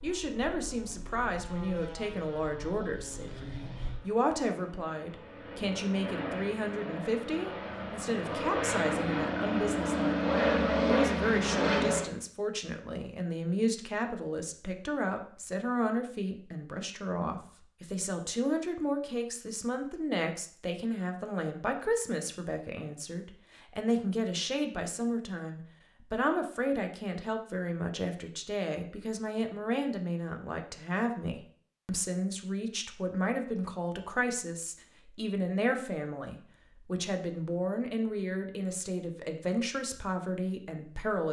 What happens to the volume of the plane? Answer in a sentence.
The loudness of the plane goes up.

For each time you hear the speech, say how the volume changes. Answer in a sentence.
The speech can be heard from 0.0 to 41.2 s, at a steady volume.